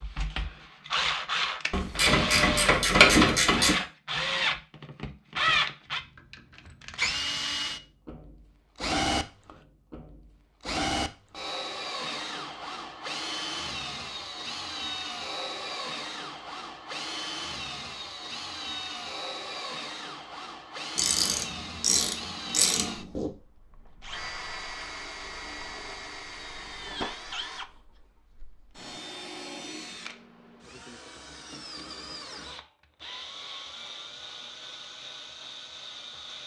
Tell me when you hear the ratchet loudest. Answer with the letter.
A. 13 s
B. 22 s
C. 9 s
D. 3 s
D.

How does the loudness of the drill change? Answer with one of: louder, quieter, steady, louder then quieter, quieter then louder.
quieter.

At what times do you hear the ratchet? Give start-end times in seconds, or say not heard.
1.7-3.8, 20.9-23.3.